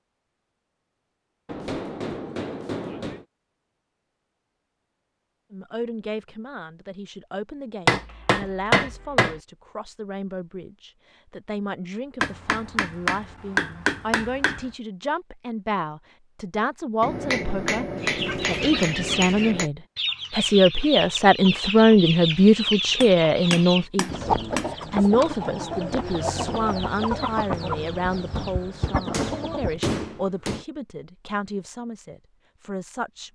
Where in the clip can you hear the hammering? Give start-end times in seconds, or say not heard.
1.4-3.2, 7.8-9.3, 12.2-14.7, 17.0-19.7, 23.0-24.7, 29.1-30.6.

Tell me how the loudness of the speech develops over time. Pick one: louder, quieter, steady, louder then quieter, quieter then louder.
louder then quieter.